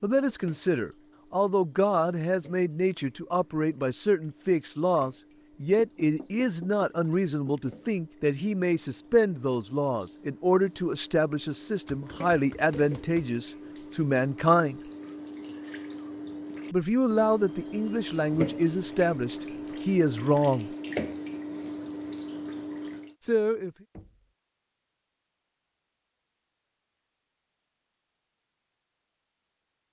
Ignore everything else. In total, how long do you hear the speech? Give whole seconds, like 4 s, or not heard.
19 s.